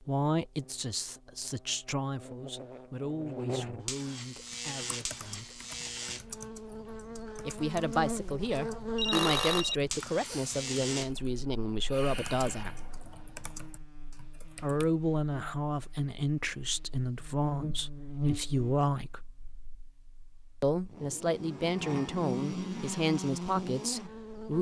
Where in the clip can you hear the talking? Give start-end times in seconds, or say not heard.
0.0-5.6, 7.5-12.8, 14.6-19.2, 20.6-24.5.